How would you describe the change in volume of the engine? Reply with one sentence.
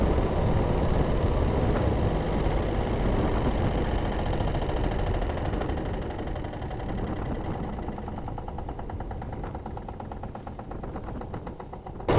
The loudness of the engine goes down.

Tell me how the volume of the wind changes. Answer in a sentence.
The loudness of the wind goes down.